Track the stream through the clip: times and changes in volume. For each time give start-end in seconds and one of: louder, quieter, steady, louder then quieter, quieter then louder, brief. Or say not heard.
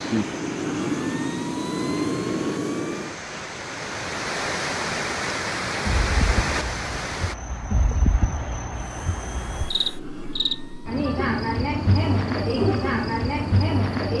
0.0-7.3 louder.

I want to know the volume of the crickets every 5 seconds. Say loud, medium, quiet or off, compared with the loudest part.
quiet, medium, loud.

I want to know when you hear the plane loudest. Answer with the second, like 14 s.
2 s.